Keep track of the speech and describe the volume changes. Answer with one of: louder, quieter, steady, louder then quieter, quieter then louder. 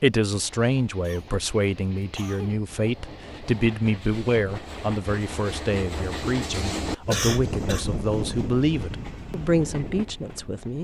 steady.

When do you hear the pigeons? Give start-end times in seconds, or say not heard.
not heard.